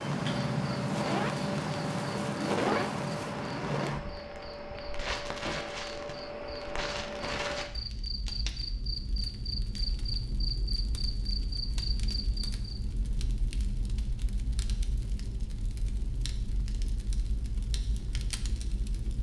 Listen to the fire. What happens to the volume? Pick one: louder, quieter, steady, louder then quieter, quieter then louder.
quieter.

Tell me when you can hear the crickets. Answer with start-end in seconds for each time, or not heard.
0.2-12.8.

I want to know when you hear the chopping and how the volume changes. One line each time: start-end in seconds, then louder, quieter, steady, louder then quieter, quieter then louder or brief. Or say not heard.
not heard.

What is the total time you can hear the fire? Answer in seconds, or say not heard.
19 s.